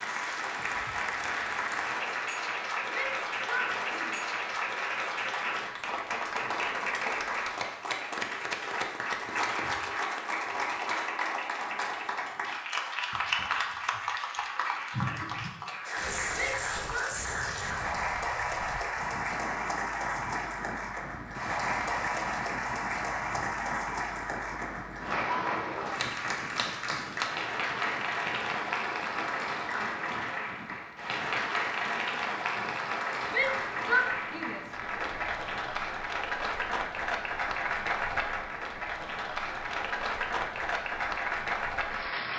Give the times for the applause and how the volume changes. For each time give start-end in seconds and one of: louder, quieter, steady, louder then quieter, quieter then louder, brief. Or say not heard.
0.0-42.3 steady.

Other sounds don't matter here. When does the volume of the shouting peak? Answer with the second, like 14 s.
34 s.